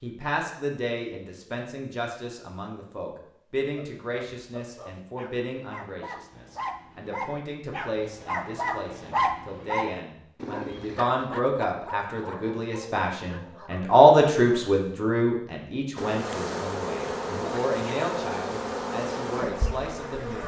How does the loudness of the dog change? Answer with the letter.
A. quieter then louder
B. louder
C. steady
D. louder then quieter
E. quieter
D.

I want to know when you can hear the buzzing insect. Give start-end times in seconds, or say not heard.
15.9-20.4.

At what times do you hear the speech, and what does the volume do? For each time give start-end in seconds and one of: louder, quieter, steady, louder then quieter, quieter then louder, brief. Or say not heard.
0.0-20.4 louder then quieter.